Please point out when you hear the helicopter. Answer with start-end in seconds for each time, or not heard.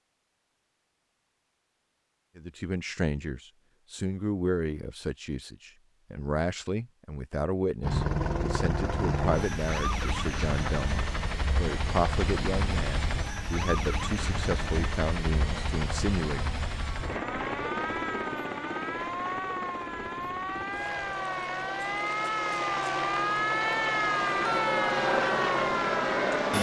7.8-26.5.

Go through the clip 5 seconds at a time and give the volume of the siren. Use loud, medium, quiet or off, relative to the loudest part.
off, off, off, medium, loud, loud.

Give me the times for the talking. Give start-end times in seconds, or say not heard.
2.4-16.5.